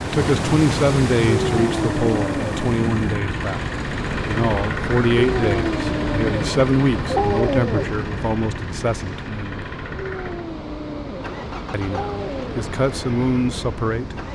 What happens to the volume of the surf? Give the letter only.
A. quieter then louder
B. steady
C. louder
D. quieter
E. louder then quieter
D.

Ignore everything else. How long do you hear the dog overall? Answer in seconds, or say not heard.
7 s.